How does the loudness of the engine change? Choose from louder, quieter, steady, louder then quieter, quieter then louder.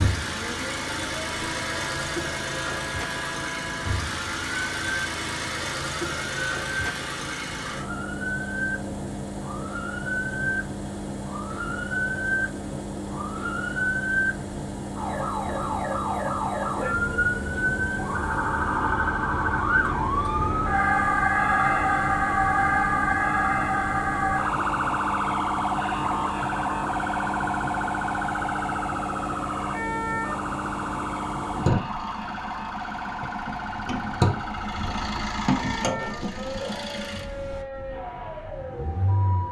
steady.